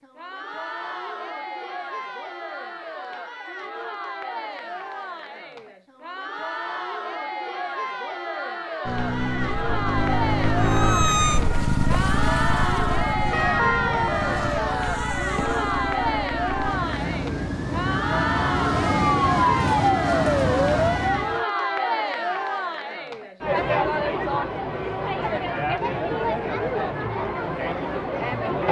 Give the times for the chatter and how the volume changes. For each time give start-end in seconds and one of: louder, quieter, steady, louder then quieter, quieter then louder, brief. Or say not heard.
0.0-28.6 louder.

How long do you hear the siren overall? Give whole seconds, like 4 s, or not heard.
11 s.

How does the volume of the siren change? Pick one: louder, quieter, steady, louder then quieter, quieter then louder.
quieter then louder.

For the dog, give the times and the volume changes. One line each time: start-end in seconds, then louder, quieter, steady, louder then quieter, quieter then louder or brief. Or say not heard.
not heard.